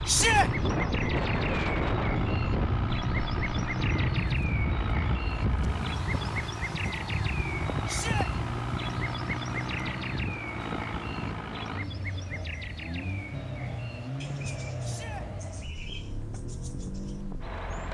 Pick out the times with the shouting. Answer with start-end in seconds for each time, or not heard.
0.1-0.5, 7.8-8.3, 14.8-15.2.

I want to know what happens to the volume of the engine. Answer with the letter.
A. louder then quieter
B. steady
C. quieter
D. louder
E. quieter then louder
B.